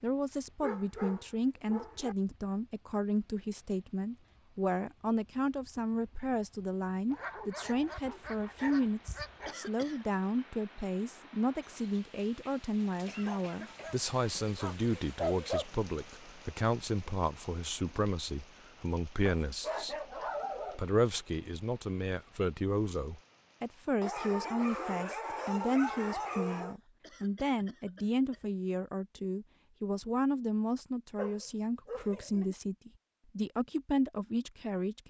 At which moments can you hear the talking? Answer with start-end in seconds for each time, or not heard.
0.0-19.9, 20.8-35.0.